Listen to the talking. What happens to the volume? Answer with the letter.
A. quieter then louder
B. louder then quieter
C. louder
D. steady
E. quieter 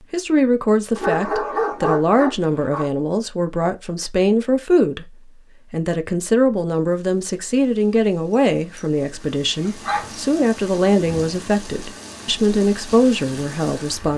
D.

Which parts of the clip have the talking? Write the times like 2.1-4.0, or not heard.
0.1-5.1, 5.7-14.1.